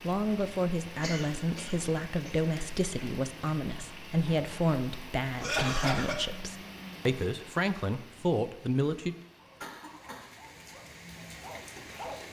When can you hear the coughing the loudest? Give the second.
6 s.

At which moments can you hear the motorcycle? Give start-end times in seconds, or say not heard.
not heard.